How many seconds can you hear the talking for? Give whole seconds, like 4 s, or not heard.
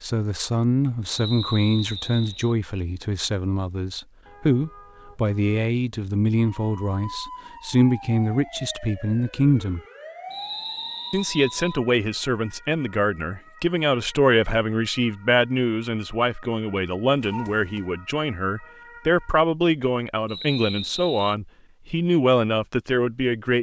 22 s.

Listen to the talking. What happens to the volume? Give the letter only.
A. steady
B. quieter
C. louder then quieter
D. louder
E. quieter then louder
A.